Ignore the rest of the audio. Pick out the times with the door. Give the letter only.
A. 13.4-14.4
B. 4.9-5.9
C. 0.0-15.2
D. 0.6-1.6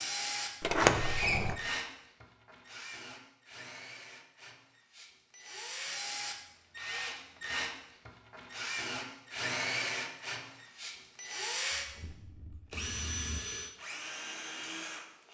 D.